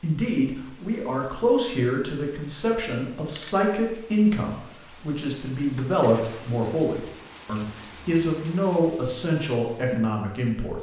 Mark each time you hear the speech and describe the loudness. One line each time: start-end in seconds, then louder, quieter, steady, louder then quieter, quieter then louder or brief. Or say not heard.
0.0-10.7 steady.